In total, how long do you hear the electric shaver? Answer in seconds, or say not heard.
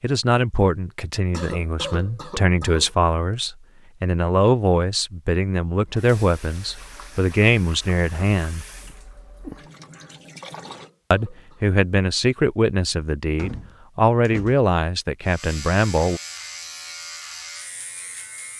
3 s.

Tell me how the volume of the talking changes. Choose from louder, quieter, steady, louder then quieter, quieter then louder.
steady.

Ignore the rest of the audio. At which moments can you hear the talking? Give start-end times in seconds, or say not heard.
0.0-8.7, 11.1-16.2.